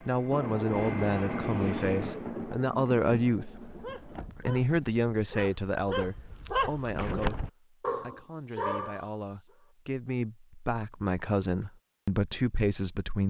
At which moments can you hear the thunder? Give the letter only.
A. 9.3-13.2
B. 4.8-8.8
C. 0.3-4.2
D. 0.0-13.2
C.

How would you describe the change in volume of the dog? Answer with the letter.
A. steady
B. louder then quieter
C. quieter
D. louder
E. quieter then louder
D.